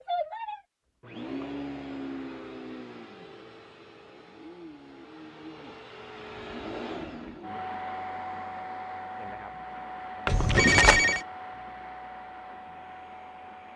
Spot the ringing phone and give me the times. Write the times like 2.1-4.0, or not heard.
10.2-11.2.